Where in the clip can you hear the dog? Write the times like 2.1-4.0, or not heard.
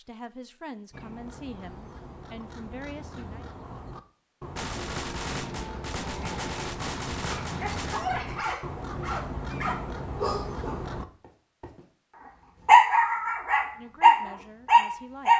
6.0-15.3.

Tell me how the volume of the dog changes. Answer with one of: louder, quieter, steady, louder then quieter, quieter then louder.
louder.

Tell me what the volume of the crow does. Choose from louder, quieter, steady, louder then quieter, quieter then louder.
louder.